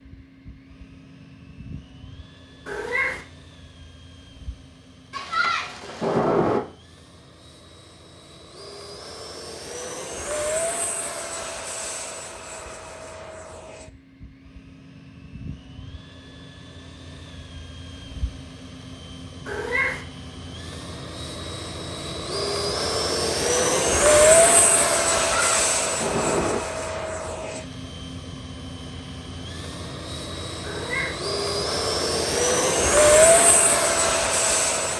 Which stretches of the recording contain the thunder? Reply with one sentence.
The thunder can be heard from 5.1 to 6.6 s and from 25.3 to 26.6 s.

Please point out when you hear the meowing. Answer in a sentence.
You can hear the meowing from 2.6 to 3.2 s, from 19.4 to 20.1 s and from 30.6 to 31.2 s.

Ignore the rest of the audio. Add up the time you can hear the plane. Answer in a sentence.
You can hear the plane for 35 seconds altogether.